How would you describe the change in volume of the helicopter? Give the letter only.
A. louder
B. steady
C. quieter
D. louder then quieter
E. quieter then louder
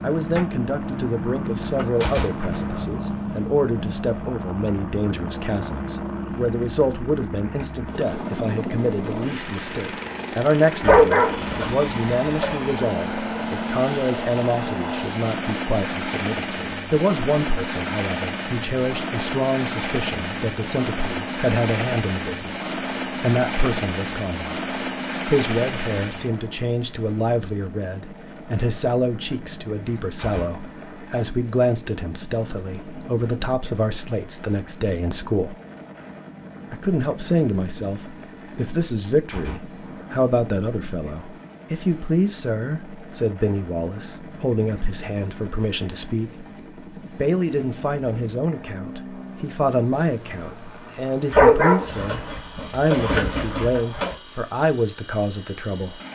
C.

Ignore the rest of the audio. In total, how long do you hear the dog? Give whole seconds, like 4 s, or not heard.
5 s.